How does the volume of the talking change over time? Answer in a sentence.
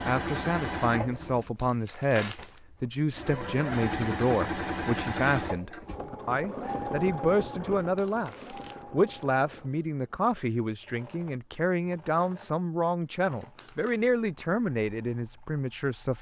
The loudness of the talking stays about the same.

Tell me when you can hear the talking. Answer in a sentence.
The talking can be heard from 0.0 to 16.1 s.